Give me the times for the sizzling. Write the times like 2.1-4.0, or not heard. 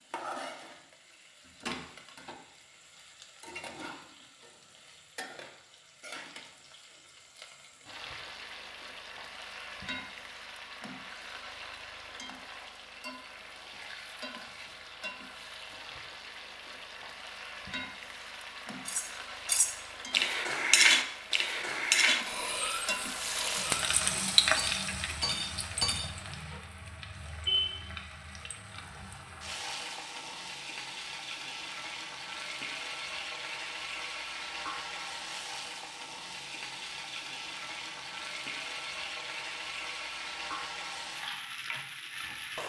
0.0-42.6.